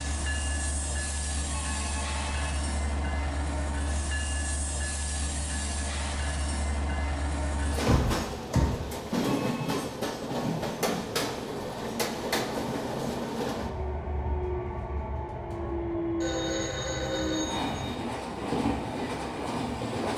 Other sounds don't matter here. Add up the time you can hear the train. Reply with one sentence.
You can hear the train for 20 seconds altogether.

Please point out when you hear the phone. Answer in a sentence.
You can hear the phone from 1.4 to 2.5 s, from 9.2 to 9.9 s and from 16.2 to 17.9 s.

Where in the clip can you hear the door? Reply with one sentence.
The door can be heard from 7.7 to 8.9 s.